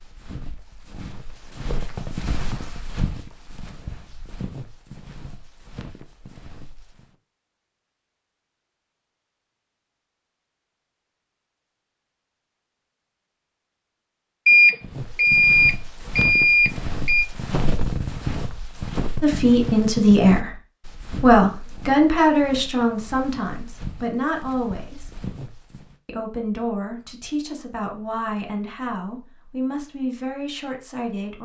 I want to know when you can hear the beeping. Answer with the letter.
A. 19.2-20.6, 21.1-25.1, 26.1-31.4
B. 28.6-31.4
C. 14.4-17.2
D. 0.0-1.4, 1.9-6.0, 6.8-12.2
C.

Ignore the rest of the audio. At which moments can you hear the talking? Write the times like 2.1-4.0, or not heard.
19.2-20.6, 21.1-25.1, 26.1-31.4.